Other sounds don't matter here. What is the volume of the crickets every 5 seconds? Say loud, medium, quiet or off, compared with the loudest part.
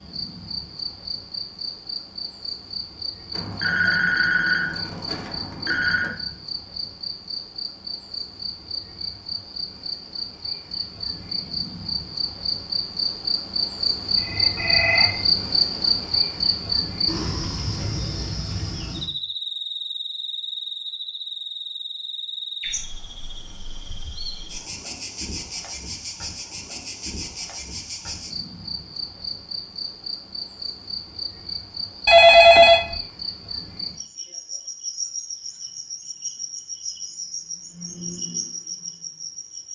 medium, medium, loud, loud, medium, medium, medium, medium.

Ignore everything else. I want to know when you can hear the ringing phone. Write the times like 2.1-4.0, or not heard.
3.3-6.1, 14.2-15.2, 32.0-33.0.